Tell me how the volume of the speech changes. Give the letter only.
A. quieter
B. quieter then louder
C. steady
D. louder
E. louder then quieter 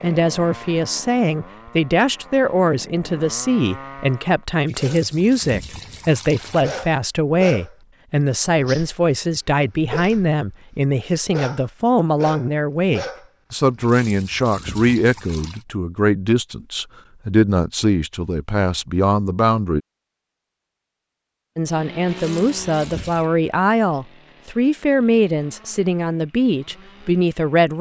C.